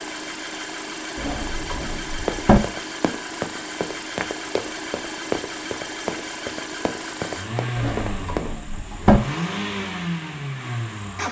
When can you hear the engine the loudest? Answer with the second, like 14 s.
10 s.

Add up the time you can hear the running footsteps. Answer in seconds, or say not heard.
6 s.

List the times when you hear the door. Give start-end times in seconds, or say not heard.
1.1-2.6, 7.8-9.2.